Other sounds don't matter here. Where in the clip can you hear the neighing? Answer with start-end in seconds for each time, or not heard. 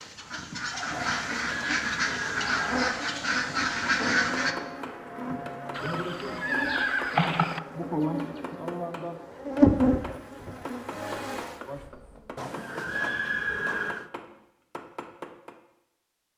0.9-2.8, 5.7-7.6, 12.3-14.1.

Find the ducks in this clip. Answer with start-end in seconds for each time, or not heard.
0.0-4.5.